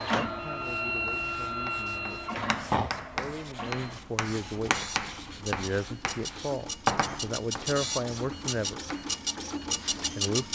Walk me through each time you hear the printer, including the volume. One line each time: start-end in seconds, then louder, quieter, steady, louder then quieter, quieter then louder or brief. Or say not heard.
0.0-10.5 quieter then louder.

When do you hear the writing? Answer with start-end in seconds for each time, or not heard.
0.7-10.3.